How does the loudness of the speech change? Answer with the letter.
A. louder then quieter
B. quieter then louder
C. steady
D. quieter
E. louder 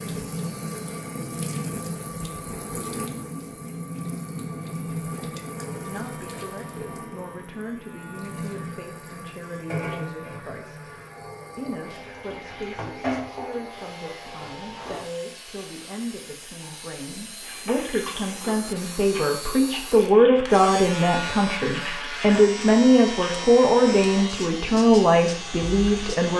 E.